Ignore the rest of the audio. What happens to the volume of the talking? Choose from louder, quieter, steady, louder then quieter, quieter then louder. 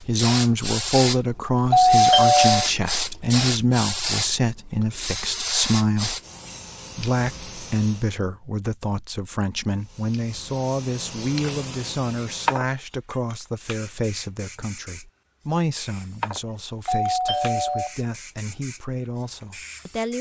quieter.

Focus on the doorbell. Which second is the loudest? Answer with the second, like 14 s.
2 s.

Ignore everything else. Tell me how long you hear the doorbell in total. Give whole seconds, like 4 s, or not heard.
2 s.